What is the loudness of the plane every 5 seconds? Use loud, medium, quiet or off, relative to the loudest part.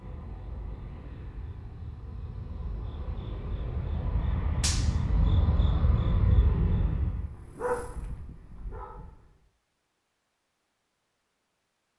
medium, loud, off.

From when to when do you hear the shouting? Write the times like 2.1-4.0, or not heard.
not heard.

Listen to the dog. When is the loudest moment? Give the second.
8 s.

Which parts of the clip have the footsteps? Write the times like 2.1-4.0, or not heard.
not heard.